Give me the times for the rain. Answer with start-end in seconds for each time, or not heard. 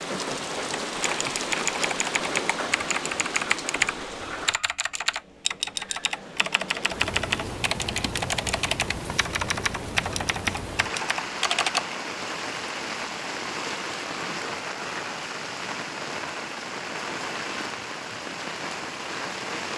0.0-19.7.